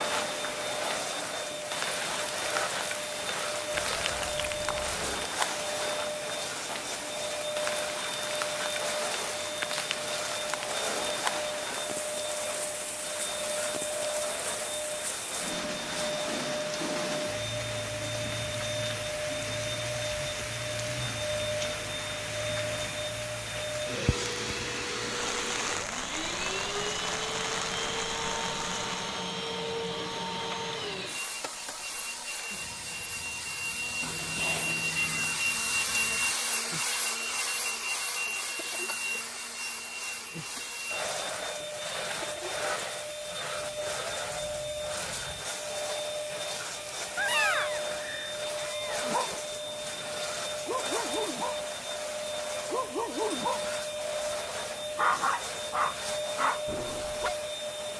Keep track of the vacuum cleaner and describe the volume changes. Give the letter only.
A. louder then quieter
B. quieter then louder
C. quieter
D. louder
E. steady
E.